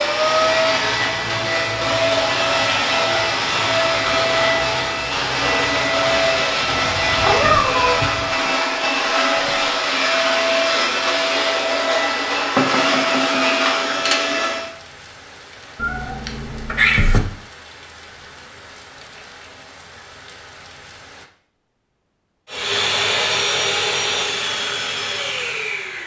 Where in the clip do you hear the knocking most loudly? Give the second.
13 s.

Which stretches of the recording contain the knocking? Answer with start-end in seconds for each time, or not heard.
12.6-14.1.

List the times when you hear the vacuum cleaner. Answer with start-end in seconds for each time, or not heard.
0.0-14.7, 22.5-26.0.